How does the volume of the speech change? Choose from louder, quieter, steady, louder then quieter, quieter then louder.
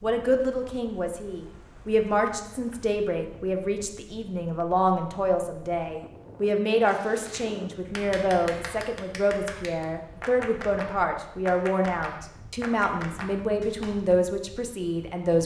steady.